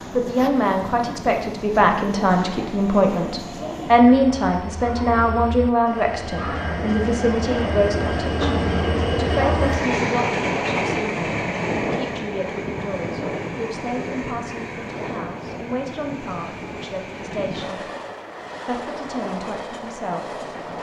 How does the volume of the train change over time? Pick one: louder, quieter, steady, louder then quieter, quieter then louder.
louder then quieter.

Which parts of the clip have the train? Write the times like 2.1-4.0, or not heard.
0.0-20.7.